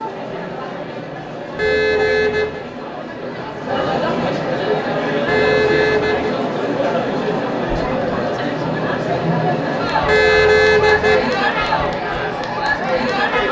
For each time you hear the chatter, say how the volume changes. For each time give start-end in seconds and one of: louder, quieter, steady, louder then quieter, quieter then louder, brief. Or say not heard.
0.0-13.4 louder.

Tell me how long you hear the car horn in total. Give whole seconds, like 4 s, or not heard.
3 s.